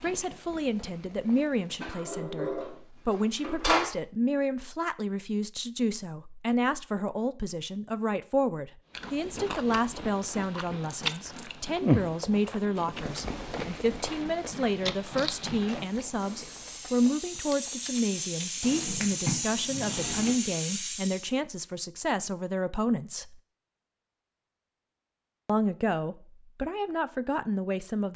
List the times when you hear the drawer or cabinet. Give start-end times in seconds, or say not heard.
1.8-3.9, 18.6-20.4.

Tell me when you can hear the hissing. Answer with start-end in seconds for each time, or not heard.
8.9-21.4.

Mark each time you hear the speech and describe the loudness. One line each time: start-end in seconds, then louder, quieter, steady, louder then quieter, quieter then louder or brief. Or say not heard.
0.0-23.4 steady
25.4-28.1 brief.